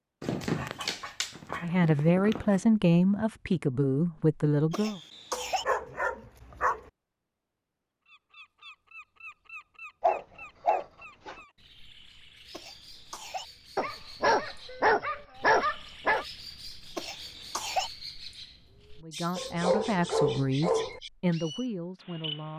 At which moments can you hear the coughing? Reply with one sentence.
You can hear the coughing from 4.7 to 5.7 s, from 12.5 to 13.4 s and from 16.9 to 17.9 s.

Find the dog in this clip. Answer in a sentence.
You can hear the dog from 0.2 to 2.6 s, from 5.3 to 6.8 s, from 10.0 to 11.3 s, from 13.8 to 16.2 s and from 19.4 to 21.0 s.